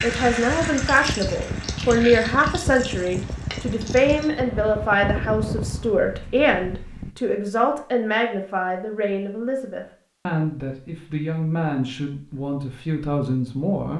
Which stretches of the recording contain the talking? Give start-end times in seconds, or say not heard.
0.0-13.9.